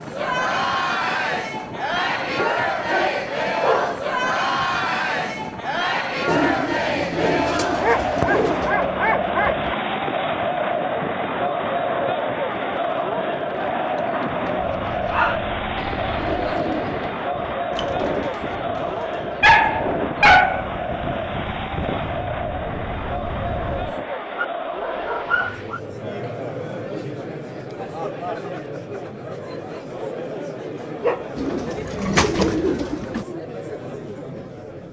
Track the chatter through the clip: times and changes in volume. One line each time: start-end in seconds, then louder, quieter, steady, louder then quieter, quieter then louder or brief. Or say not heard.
0.0-34.8 quieter.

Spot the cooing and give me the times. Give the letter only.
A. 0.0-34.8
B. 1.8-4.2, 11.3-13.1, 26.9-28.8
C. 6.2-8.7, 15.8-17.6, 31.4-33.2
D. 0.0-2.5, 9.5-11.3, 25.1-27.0
C.